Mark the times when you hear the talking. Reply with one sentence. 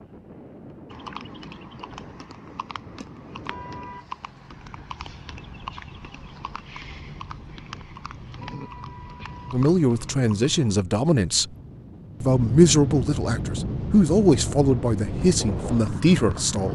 You can hear the talking from 9.5 to 11.5 s and from 12.2 to 16.7 s.